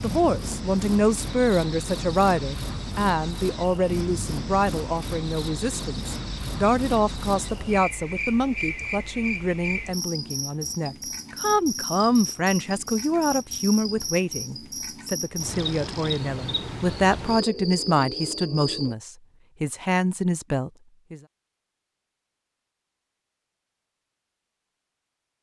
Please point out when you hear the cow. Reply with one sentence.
The cow can't be heard in this clip.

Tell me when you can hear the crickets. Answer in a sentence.
You can hear the crickets from 0.0 to 18.9 s.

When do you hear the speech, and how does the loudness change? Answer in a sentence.
You can hear the speech from 0.0 to 21.2 s, at a steady volume.